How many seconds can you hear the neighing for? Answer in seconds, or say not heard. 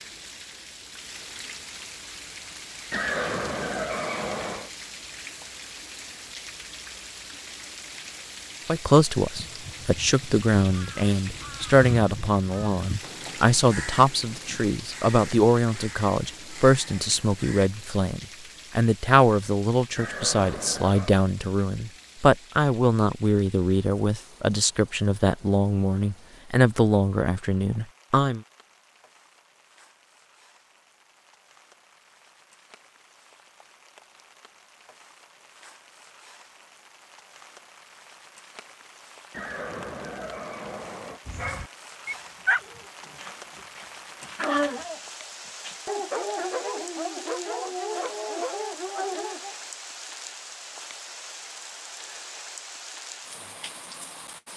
5 s.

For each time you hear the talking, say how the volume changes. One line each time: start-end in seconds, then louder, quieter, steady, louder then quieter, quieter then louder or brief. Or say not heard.
8.7-28.4 steady.